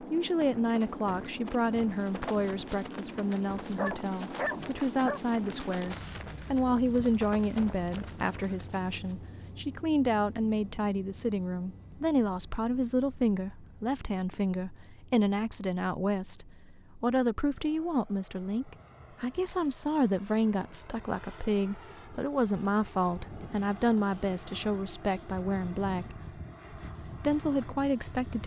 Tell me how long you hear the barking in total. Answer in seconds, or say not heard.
2 s.